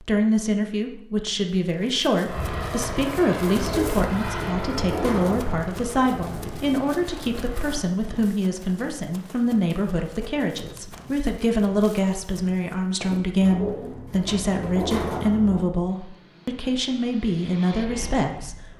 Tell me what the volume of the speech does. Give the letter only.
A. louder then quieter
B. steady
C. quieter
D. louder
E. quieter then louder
B.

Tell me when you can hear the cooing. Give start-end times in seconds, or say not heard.
3.6-5.7, 13.4-15.7.